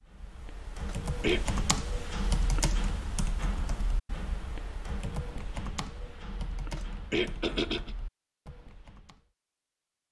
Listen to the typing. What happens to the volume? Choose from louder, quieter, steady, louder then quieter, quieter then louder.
quieter.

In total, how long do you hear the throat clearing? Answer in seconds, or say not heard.
2 s.